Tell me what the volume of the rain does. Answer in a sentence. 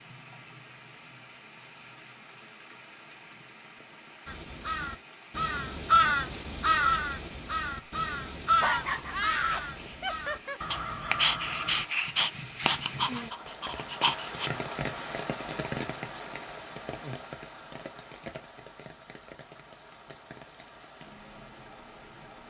The loudness of the rain goes up, then down.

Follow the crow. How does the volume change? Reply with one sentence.
The volume of the crow goes down.